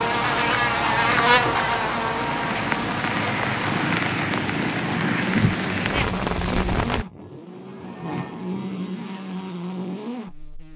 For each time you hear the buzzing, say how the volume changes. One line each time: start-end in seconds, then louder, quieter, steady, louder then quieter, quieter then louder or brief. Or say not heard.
0.0-10.7 quieter.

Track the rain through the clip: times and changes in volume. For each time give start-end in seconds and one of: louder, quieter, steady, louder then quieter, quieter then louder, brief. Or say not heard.
0.0-7.0 louder.